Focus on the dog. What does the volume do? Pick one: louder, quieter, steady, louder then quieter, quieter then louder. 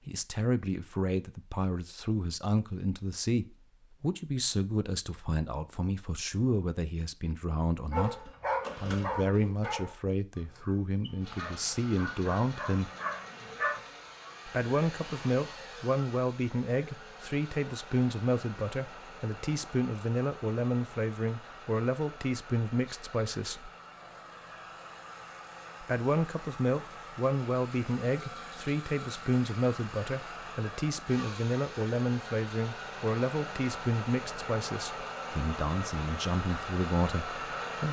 quieter then louder.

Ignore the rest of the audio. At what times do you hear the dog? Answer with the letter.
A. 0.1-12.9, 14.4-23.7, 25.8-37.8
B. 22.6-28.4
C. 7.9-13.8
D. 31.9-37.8
C.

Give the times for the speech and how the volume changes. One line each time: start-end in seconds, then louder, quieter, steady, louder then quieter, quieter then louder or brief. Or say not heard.
0.1-12.9 steady
14.4-23.7 steady
25.8-37.8 steady.